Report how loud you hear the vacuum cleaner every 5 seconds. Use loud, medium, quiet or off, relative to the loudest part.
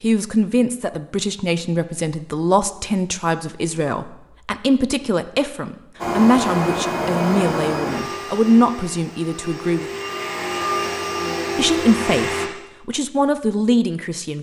off, loud, loud.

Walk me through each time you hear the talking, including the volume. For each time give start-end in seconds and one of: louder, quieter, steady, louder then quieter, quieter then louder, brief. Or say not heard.
0.0-9.8 steady
11.6-14.3 brief.